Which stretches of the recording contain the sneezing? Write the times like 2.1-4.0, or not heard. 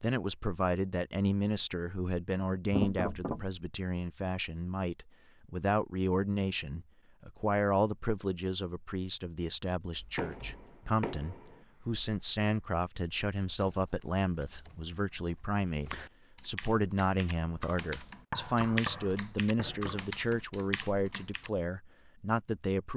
not heard.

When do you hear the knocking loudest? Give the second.
3 s.